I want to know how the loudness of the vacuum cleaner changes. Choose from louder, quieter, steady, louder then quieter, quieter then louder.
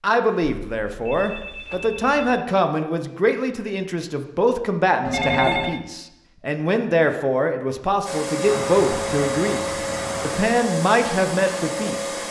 steady.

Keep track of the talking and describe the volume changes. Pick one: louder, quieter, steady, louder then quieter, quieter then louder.
steady.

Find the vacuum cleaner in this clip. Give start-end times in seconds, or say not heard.
8.1-12.2.